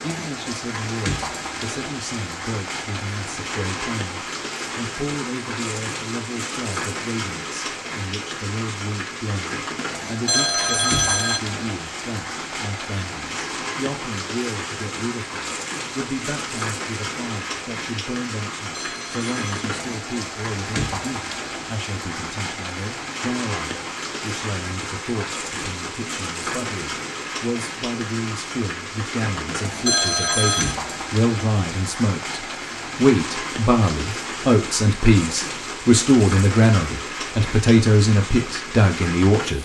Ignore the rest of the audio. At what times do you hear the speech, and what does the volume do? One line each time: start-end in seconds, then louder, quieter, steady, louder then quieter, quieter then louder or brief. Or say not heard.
0.0-39.6 louder.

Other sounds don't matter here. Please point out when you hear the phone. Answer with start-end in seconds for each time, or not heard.
10.2-11.4, 18.7-19.4, 29.9-30.8.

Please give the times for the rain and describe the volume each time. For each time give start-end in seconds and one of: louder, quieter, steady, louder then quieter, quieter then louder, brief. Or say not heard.
0.0-39.6 steady.